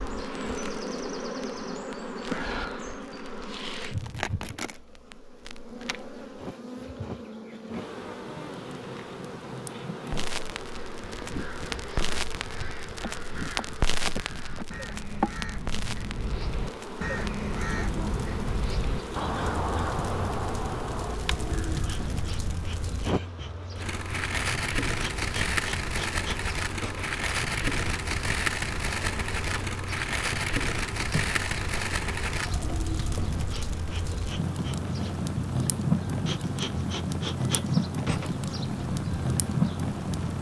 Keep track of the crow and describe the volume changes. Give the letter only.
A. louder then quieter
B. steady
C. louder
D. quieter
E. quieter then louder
C.